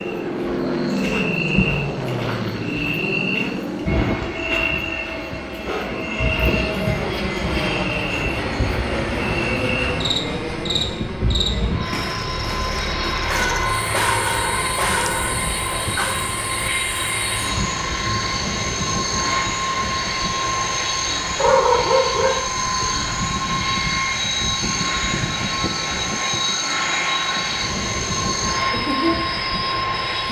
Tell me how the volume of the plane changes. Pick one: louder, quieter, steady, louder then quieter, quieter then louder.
steady.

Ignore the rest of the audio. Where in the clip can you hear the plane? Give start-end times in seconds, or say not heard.
0.0-30.2.